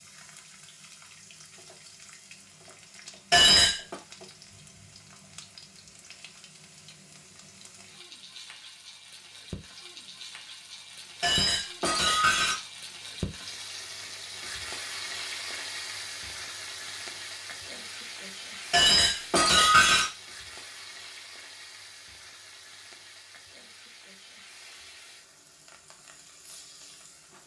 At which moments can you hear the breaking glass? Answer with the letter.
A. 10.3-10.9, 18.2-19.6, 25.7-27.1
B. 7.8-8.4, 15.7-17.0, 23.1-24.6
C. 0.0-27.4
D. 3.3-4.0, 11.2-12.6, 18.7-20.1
D.